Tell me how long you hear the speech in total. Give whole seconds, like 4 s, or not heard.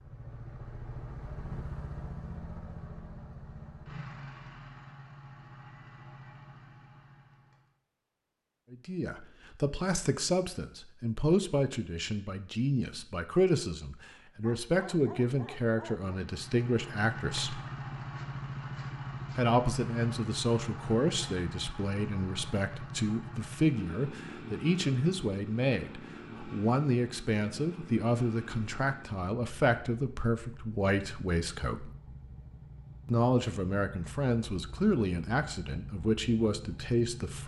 26 s.